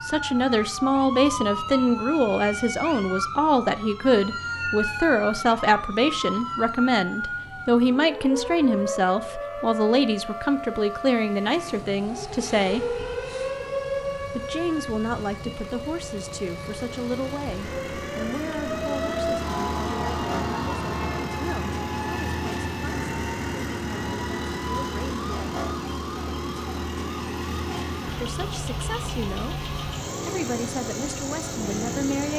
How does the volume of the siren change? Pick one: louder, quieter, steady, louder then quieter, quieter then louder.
quieter.